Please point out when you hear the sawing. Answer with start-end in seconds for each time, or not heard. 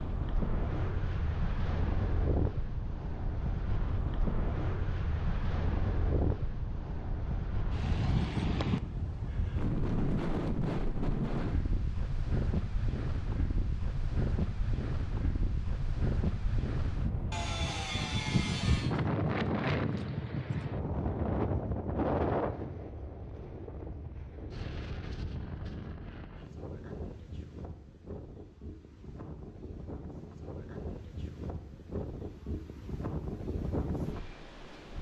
17.3-18.9.